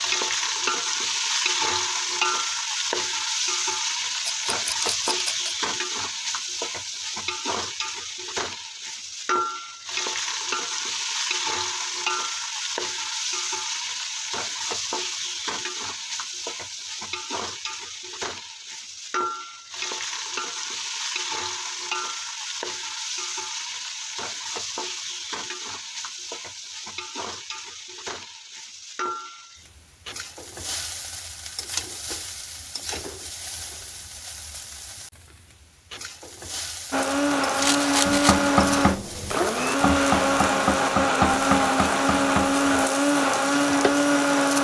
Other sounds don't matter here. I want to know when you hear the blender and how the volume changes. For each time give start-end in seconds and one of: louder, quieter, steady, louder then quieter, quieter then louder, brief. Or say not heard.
36.9-44.5 steady.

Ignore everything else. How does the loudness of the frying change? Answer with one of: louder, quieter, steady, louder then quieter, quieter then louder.
quieter.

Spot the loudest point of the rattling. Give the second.
38 s.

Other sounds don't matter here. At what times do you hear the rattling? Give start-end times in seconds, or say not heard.
4.2-5.5, 37.5-38.5.